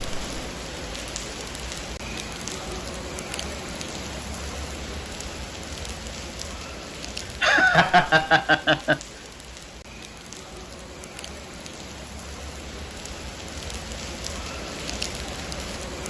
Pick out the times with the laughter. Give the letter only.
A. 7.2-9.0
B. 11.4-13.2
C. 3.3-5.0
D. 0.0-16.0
A.